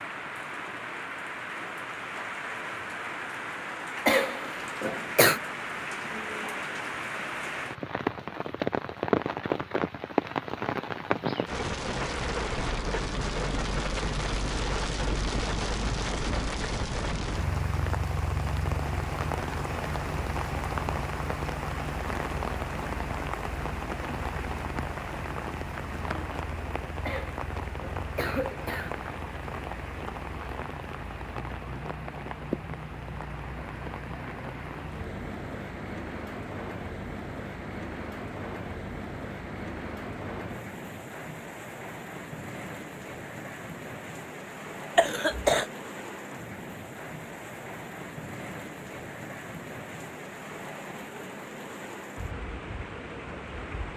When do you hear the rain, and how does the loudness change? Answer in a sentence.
The rain can be heard from 0.0 to 53.9 s, getting quieter.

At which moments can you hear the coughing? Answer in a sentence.
The coughing can be heard from 4.0 to 5.4 s, from 27.1 to 28.9 s and from 45.0 to 45.6 s.